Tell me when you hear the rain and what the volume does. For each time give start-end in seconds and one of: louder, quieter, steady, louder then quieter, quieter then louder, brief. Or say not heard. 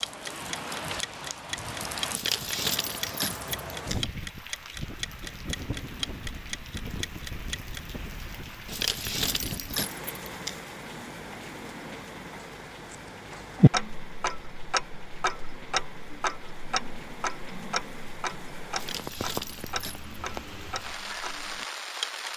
0.0-22.3 quieter then louder.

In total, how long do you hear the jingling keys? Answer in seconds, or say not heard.
5 s.